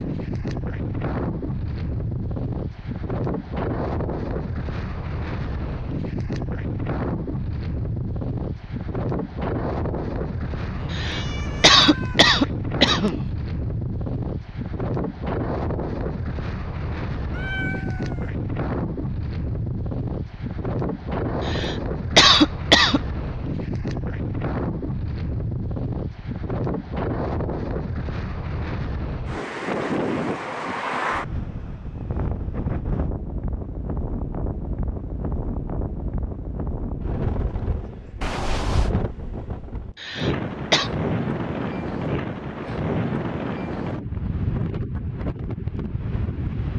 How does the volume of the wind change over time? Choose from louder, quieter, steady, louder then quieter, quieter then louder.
steady.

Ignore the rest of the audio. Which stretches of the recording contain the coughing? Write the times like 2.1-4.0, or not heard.
10.9-13.2, 21.4-23.0, 40.0-40.9.